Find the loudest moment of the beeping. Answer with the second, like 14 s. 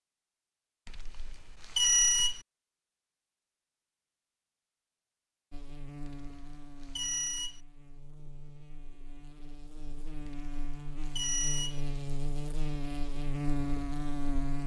2 s.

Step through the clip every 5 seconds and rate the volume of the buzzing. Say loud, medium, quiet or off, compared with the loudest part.
off, quiet, loud.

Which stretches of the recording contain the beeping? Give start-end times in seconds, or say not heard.
0.8-2.4, 6.0-7.6, 10.2-11.8.